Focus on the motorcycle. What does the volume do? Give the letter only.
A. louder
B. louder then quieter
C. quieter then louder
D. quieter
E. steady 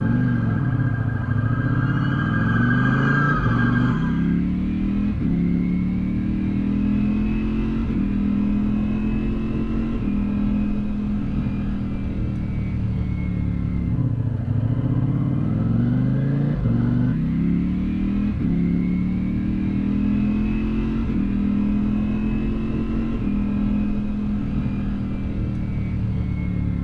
E.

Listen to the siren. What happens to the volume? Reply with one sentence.
The loudness of the siren goes up.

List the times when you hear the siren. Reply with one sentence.
You can hear the siren from 0.0 to 4.5 s.